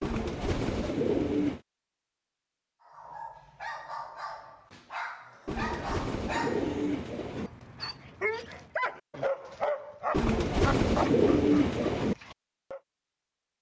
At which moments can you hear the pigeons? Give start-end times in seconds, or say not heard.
0.0-1.6, 5.5-7.5, 10.1-12.2.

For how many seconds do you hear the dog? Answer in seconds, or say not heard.
10 s.